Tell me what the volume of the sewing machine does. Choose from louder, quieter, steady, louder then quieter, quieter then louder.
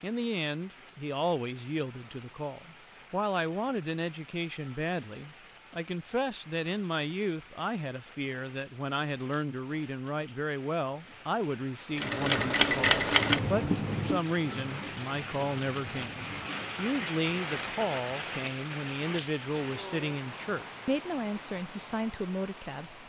quieter.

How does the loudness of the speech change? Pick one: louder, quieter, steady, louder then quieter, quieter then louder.
steady.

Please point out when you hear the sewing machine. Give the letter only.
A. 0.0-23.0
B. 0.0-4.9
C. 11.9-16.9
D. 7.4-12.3
C.